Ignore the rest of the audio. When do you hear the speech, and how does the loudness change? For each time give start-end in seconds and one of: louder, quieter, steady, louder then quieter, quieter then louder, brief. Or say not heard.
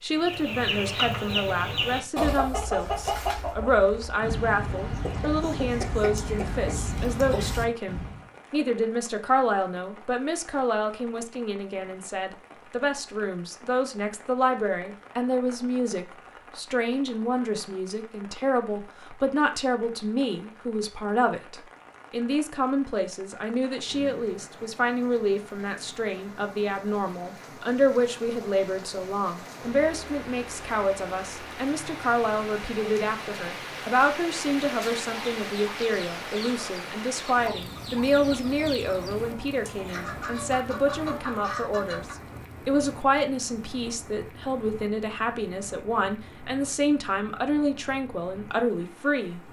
0.0-49.4 steady.